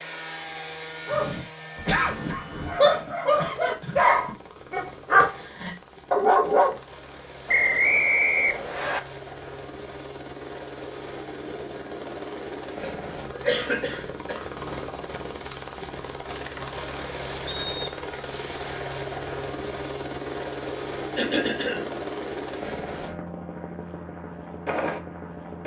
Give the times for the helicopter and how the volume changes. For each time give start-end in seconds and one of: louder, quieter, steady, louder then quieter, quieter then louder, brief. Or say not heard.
0.0-25.6 louder.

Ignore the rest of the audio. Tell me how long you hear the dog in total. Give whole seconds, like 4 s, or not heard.
6 s.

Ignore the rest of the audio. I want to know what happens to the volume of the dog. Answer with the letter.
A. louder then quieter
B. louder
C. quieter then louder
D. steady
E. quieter
B.